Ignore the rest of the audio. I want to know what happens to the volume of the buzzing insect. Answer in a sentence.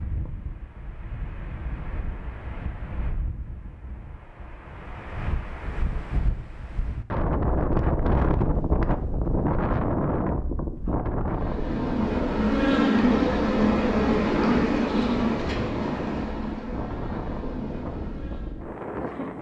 The loudness of the buzzing insect goes down.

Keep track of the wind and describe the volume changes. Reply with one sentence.
The volume of the wind goes up, then down.